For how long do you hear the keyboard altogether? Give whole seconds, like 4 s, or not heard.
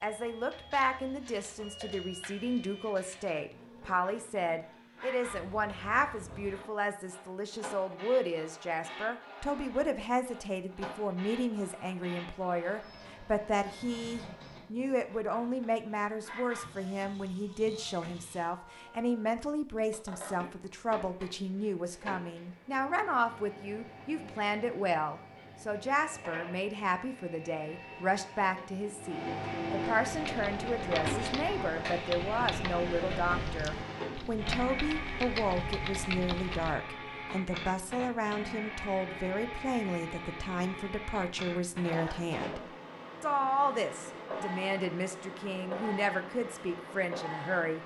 7 s.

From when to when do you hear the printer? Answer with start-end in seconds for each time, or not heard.
0.0-47.8.